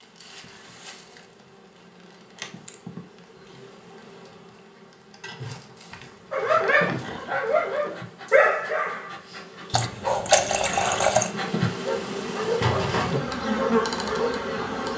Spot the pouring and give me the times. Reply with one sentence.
The pouring can be heard from 9.7 to 11.3 s.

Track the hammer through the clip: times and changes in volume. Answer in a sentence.
The hammer can't be heard in this clip.